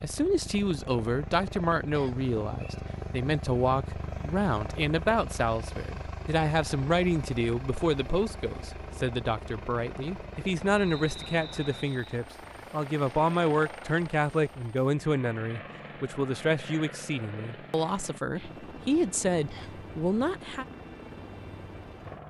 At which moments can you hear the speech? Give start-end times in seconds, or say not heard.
0.0-20.6.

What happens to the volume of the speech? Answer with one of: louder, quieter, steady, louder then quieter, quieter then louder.
steady.